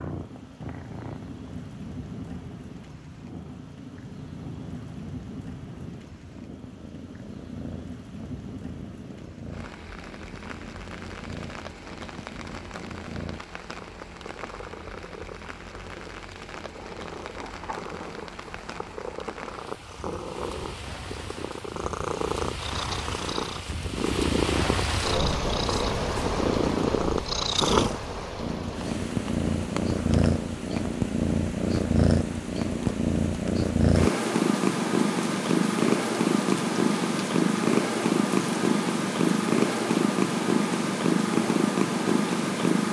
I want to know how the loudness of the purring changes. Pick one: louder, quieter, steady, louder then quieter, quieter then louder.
louder.